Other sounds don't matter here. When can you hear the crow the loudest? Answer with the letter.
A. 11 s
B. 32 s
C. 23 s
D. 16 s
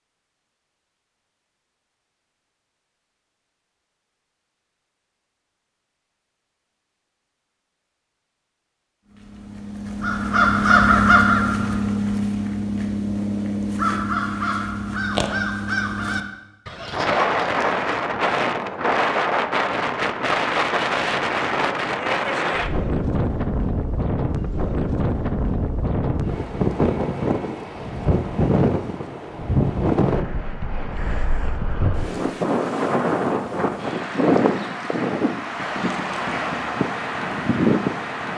A.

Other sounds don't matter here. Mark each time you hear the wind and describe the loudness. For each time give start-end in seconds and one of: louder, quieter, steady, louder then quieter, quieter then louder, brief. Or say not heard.
16.9-38.3 steady.